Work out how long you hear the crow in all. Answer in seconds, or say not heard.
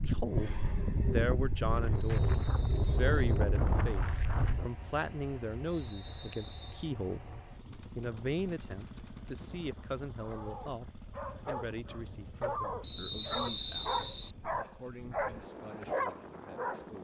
not heard.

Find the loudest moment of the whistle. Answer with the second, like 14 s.
13 s.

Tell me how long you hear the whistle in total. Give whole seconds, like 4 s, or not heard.
4 s.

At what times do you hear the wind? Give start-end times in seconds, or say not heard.
0.0-16.9.